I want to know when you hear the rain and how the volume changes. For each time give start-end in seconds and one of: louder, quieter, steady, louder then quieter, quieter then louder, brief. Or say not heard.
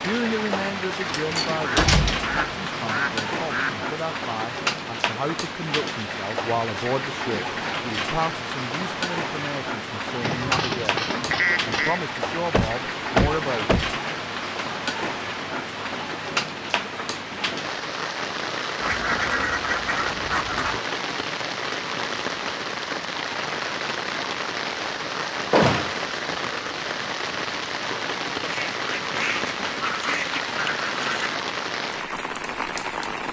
0.0-33.2 steady.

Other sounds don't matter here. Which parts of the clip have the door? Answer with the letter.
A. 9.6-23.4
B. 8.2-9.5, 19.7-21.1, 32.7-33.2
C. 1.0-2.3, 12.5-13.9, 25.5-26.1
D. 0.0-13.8
C.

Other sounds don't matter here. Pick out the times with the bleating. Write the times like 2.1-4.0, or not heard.
not heard.